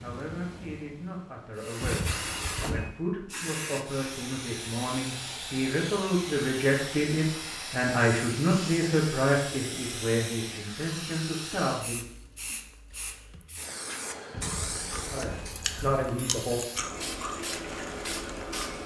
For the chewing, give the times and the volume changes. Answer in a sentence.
You can hear the chewing from 14.6 to 18.8 s, getting louder then quieter.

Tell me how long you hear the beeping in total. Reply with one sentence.
The beeping can be heard for 3 seconds in total.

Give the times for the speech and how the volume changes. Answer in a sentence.
The speech can be heard from 0.0 to 12.1 s, getting louder then quieter; and briefly from 14.9 to 16.6 s.